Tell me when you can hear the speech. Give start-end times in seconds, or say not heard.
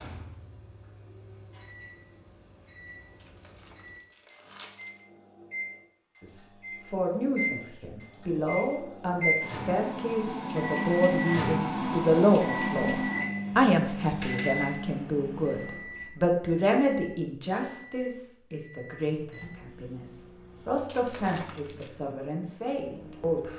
6.2-23.5.